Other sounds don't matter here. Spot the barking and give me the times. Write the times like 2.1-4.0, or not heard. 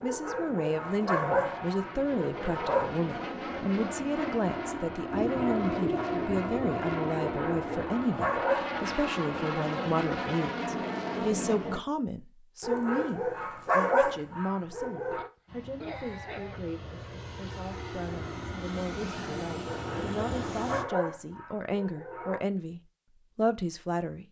0.0-3.0, 7.2-8.8, 12.6-15.3, 19.6-22.4.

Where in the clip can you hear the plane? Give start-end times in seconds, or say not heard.
0.1-11.8, 15.4-20.9.